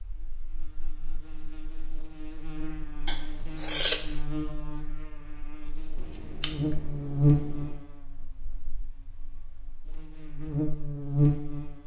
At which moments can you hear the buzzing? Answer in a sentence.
The buzzing can be heard from 0.0 to 11.8 s.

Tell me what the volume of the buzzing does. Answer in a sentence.
The volume of the buzzing goes up.